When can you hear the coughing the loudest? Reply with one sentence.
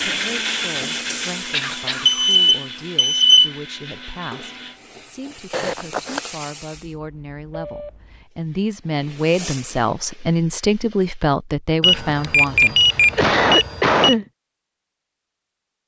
The volume of the coughing peaks at 14 seconds.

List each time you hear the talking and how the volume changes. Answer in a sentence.
You can hear the talking from 0.1 to 13.4 s, getting louder.